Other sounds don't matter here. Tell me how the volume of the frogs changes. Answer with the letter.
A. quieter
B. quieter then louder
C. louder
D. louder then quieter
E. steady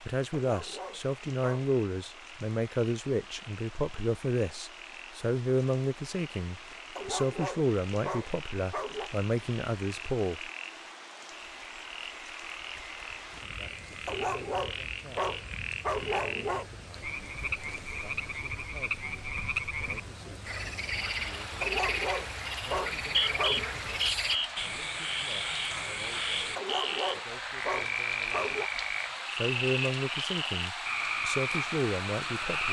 C.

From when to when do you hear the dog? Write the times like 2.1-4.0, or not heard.
0.3-1.7, 7.0-9.1, 14.1-16.7, 21.6-23.6, 26.6-28.7.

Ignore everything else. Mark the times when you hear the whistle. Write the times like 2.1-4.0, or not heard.
22.8-24.5.